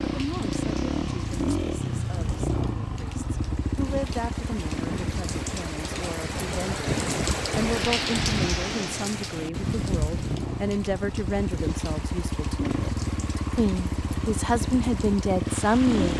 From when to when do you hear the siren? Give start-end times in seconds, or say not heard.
not heard.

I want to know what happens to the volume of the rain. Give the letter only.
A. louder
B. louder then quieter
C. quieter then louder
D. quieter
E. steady
B.